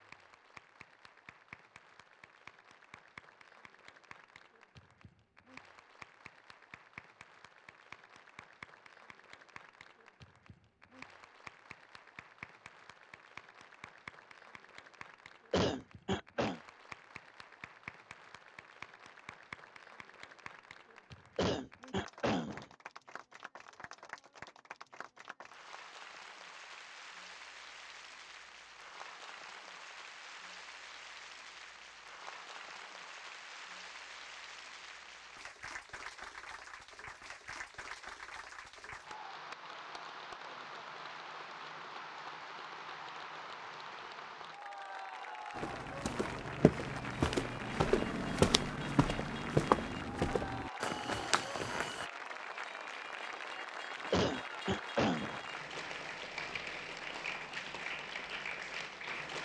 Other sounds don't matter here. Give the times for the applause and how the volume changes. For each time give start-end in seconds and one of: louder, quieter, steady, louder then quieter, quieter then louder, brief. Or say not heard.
0.0-59.4 louder.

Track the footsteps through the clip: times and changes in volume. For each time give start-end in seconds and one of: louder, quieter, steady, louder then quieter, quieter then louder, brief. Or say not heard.
45.5-52.0 louder then quieter.